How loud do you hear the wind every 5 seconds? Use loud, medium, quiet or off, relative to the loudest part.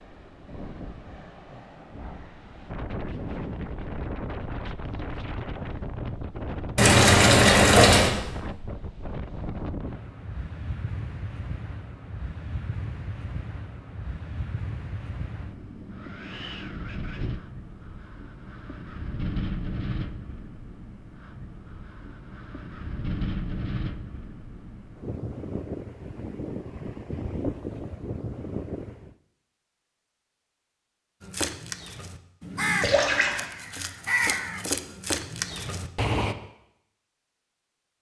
loud, loud, loud, loud, loud, loud, off, off.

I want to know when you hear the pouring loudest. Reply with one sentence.
The loudest moment of the pouring is at 8 seconds.